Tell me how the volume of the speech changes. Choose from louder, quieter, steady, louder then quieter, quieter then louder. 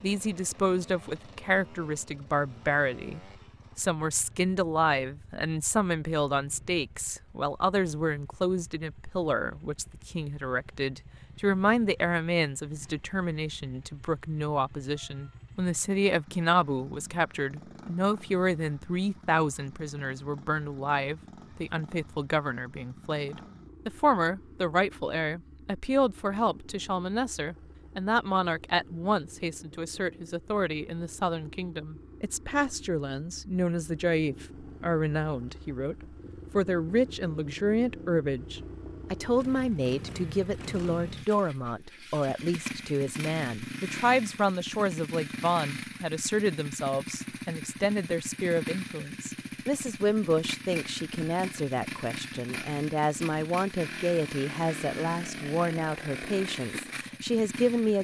steady.